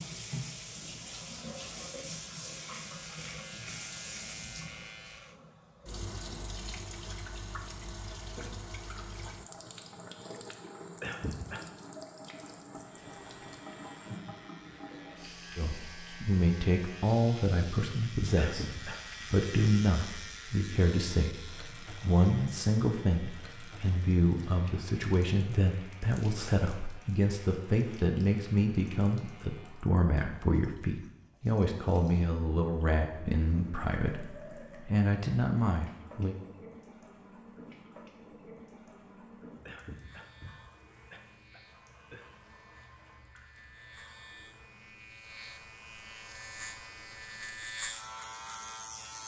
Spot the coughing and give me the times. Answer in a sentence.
You can hear the coughing from 11.0 to 11.7 s, from 18.4 to 19.1 s and from 39.6 to 42.3 s.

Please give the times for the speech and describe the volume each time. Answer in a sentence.
You can hear the speech from 15.6 to 36.4 s, at a steady volume.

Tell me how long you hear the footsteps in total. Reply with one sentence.
You can't hear the footsteps here.